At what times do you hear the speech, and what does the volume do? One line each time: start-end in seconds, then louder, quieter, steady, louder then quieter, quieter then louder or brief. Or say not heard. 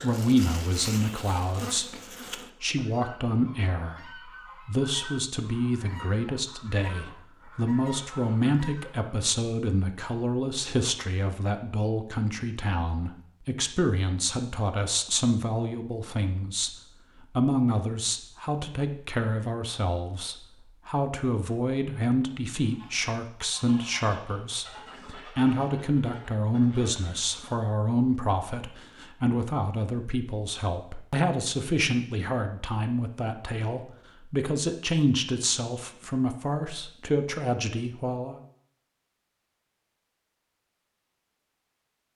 0.0-16.7 steady
17.4-38.4 steady.